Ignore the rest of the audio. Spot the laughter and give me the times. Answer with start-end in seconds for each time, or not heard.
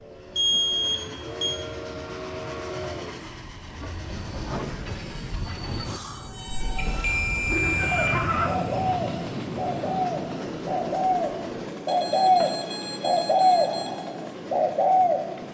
7.6-8.6.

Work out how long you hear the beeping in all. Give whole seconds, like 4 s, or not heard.
5 s.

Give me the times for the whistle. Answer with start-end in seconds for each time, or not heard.
not heard.